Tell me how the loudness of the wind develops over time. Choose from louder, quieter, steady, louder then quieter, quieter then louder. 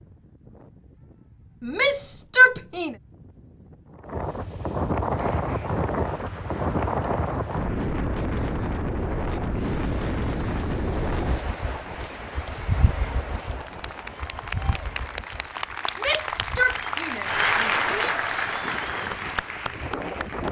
louder then quieter.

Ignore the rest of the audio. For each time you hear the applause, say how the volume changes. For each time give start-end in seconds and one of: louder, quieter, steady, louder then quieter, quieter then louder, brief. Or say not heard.
5.1-20.4 louder.